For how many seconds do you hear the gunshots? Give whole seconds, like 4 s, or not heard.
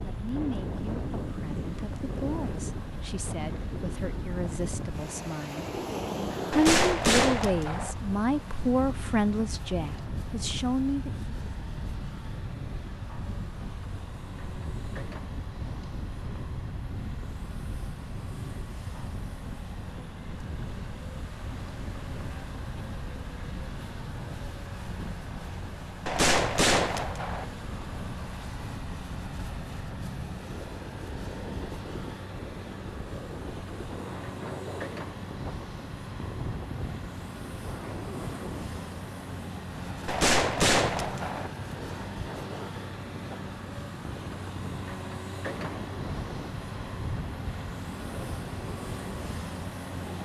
4 s.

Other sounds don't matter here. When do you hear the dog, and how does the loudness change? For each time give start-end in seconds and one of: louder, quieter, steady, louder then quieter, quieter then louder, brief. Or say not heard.
not heard.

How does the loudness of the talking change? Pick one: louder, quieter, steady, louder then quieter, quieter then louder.
louder.